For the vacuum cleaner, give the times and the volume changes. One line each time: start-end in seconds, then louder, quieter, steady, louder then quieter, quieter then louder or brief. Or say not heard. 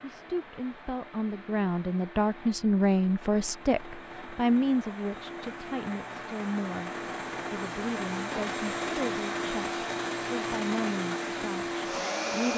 0.0-12.5 louder.